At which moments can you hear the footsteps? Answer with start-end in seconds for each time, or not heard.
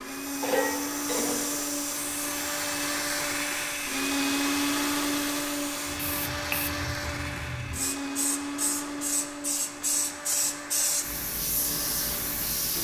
not heard.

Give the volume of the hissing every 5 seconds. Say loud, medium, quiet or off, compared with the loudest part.
medium, loud, loud.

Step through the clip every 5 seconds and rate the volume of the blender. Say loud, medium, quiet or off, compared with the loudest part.
loud, loud, medium.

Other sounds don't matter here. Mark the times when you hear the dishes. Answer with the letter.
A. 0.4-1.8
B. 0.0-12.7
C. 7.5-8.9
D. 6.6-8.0
A.